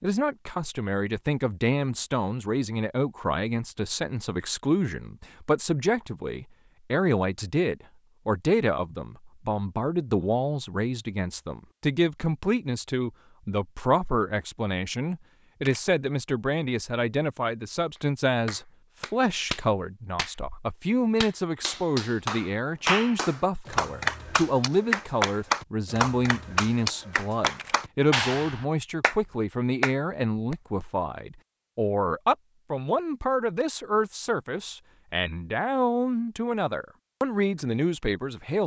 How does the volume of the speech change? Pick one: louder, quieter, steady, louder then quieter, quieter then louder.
steady.